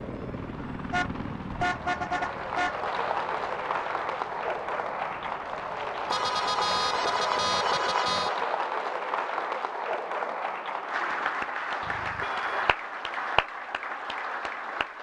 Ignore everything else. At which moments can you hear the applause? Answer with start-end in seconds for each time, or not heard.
0.0-14.9.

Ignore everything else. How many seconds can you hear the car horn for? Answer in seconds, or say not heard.
5 s.